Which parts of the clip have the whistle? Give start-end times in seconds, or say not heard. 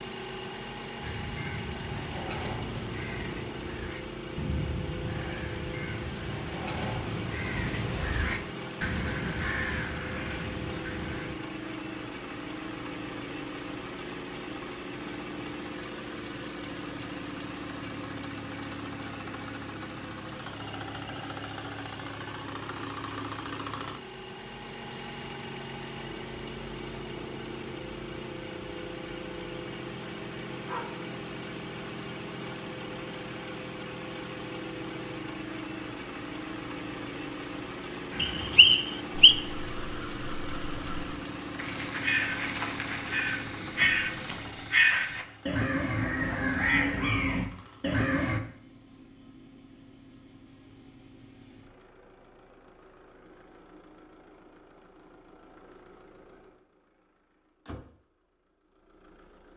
38.2-39.4.